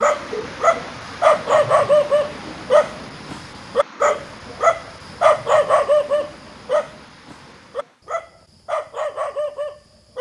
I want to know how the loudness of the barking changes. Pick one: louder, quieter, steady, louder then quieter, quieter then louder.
quieter.